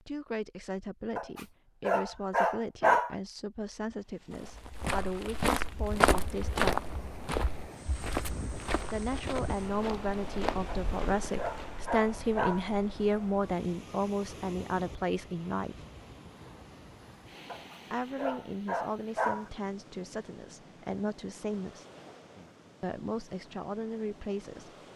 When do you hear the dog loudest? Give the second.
3 s.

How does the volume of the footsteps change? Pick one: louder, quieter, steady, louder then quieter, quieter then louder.
quieter.